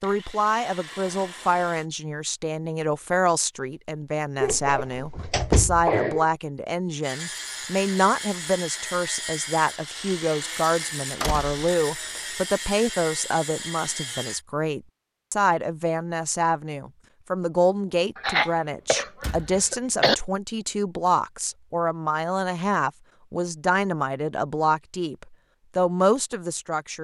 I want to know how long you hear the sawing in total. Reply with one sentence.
The sawing can be heard for 9 seconds in total.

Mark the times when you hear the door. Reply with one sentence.
The door can be heard from 4.7 to 5.8 s, from 11.2 to 12.2 s and from 19.2 to 19.6 s.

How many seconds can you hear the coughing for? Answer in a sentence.
You can hear the coughing for 4 seconds altogether.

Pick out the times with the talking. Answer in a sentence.
You can hear the talking from 0.0 to 27.0 s.